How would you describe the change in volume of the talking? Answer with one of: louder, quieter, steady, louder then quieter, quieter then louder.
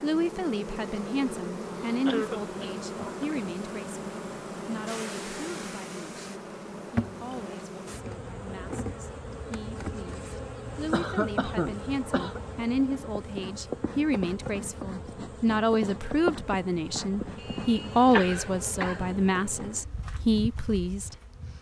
quieter then louder.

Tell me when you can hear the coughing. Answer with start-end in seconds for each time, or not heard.
2.0-3.2, 10.9-12.4, 17.4-19.1.